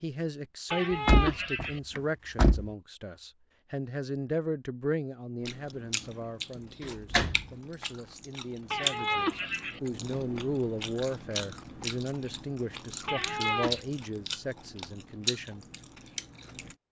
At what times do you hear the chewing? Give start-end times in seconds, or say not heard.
5.4-16.8.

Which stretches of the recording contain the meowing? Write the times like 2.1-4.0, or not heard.
0.7-1.8, 8.7-9.8, 13.1-13.8.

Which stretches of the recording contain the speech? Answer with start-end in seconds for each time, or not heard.
0.0-15.7.